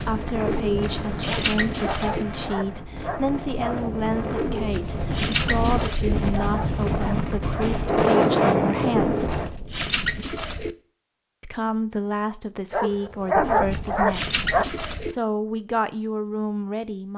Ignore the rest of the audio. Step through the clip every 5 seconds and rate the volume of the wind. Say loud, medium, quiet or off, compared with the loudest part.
medium, loud, off, off.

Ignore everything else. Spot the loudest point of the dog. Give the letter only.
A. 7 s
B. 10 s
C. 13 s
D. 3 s
C.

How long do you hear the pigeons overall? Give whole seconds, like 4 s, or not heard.
7 s.